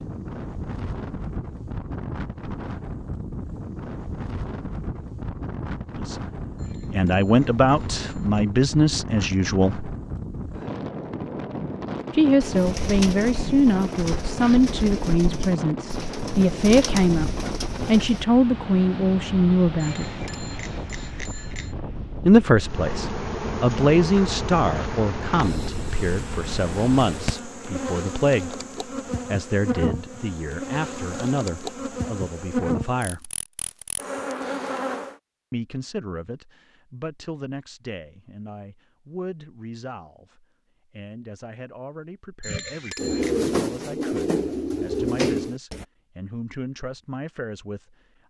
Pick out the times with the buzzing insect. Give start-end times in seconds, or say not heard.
22.6-35.1.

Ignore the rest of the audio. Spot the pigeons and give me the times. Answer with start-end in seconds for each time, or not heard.
12.4-18.2, 43.0-45.9.